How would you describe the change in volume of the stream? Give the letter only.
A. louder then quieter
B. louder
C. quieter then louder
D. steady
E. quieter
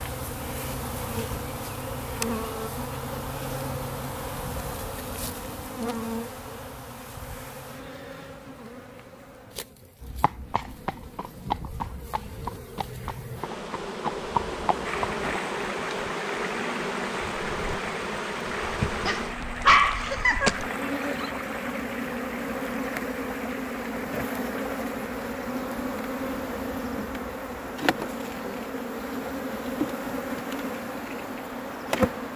E.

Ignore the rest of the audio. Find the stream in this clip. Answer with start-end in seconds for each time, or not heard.
14.8-32.3.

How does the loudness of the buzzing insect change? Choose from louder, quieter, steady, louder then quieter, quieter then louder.
quieter then louder.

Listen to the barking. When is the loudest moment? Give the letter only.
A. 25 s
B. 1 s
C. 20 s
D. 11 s
C.